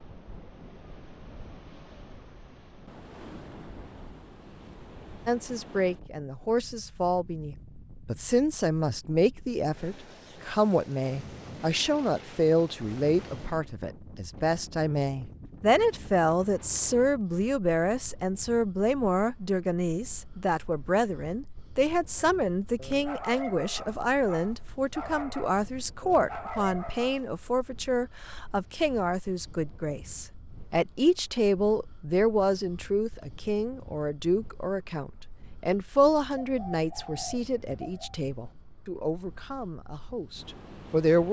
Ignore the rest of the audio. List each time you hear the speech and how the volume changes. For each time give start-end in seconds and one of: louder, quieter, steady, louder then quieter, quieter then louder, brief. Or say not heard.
5.2-41.2 steady.